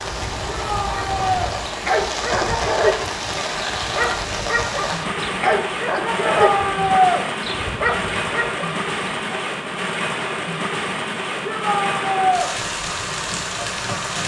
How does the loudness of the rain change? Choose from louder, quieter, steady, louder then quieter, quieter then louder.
steady.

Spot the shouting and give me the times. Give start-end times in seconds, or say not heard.
0.5-1.6, 6.3-7.2, 11.4-12.5.